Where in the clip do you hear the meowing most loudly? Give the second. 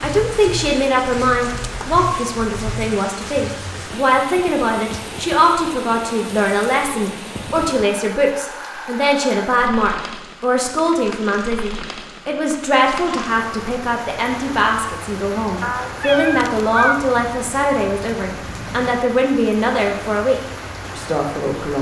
17 s.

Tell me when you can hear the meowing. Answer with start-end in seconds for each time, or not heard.
15.6-17.1.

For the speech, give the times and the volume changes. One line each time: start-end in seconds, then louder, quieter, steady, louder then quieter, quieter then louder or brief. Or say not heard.
0.0-21.7 steady.